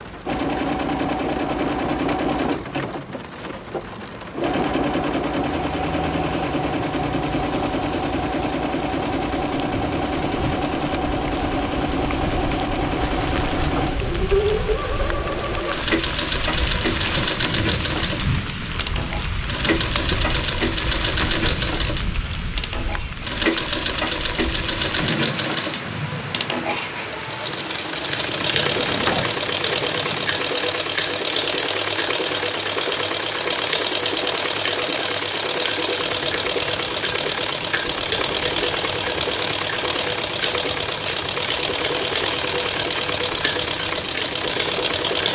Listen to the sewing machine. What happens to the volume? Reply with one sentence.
The volume of the sewing machine stays about the same.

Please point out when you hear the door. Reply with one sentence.
You can hear the door from 28.6 to 29.5 s.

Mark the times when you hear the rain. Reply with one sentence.
The rain can be heard from 0.0 to 45.3 s.